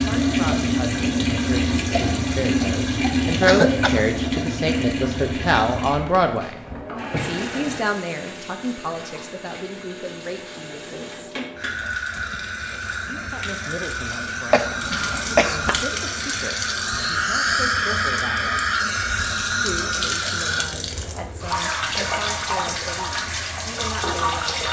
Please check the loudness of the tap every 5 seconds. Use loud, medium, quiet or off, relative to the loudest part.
loud, medium, medium, loud, loud.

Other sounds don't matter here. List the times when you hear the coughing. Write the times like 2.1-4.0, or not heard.
3.5-4.0, 14.5-15.8.